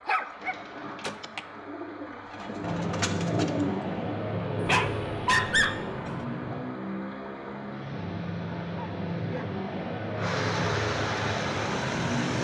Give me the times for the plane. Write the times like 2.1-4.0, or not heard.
2.5-12.3.